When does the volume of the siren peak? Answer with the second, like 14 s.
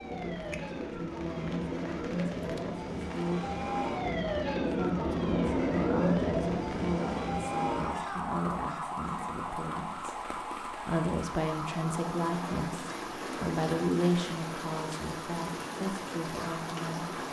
6 s.